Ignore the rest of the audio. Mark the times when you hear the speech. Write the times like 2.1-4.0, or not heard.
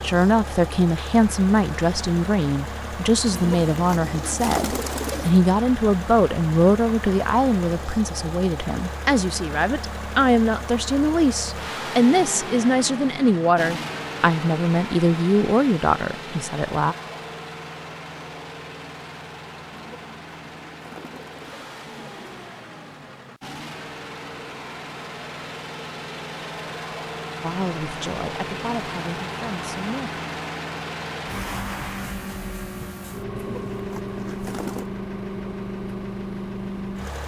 0.0-16.9, 27.4-30.1.